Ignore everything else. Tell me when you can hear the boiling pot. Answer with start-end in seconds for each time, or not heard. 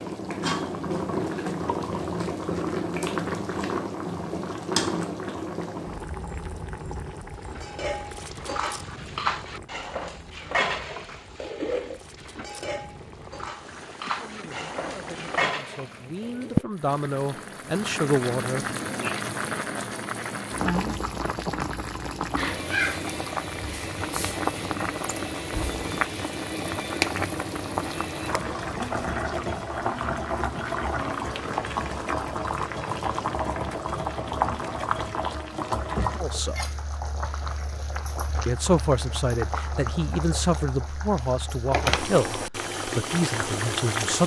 0.0-44.2.